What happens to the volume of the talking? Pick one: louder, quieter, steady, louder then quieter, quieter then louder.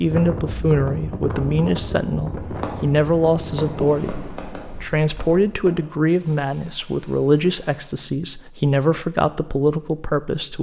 steady.